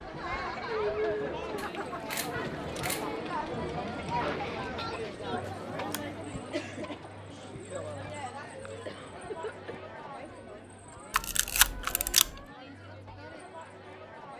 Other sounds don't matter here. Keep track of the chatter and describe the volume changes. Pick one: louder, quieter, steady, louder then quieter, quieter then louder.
quieter.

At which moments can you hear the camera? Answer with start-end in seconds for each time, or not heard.
1.6-3.1, 5.4-6.2, 11.1-12.4.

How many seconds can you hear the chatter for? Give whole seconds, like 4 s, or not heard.
14 s.